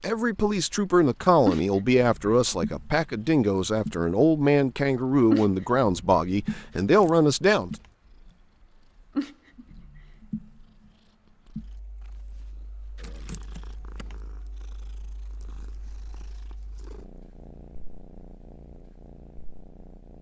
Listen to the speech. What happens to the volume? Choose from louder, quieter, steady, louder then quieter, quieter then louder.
steady.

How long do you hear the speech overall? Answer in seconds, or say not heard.
8 s.